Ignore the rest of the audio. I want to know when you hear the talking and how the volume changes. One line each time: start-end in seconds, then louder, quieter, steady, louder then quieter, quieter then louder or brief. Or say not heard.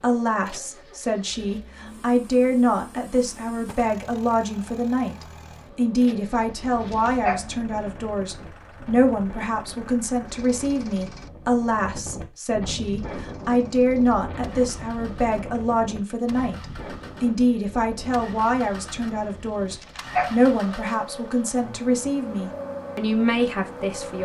0.0-24.2 steady.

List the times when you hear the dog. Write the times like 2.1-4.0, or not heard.
6.7-7.5, 19.6-20.4.